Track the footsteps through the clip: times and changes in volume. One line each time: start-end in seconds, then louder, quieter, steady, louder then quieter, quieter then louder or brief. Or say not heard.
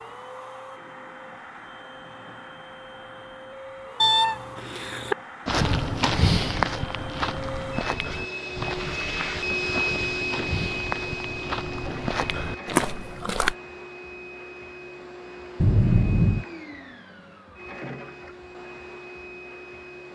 5.5-13.6 quieter then louder.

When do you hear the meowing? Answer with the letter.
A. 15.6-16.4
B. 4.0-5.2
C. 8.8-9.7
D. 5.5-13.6
B.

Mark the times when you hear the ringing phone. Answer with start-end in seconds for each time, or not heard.
15.6-16.4.